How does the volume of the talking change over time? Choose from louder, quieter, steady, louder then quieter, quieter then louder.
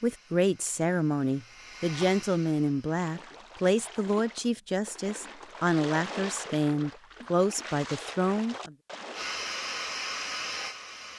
steady.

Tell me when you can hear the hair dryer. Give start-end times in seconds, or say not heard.
0.0-3.1, 9.1-11.1.